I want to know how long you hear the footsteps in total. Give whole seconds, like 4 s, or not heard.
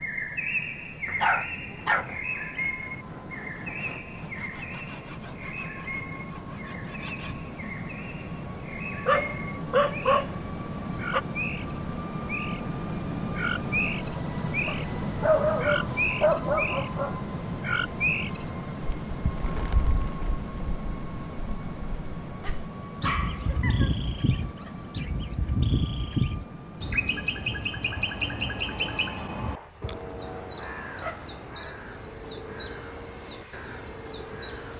not heard.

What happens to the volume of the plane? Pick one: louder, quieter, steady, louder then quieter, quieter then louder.
louder then quieter.